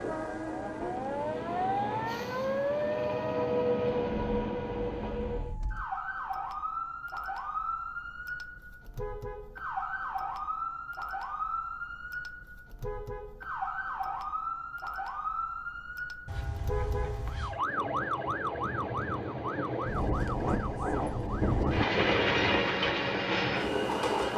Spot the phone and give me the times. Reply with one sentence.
You can hear the phone from 16.2 to 17.6 s.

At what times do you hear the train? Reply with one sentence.
You can hear the train from 0.0 to 5.5 s and from 17.5 to 24.3 s.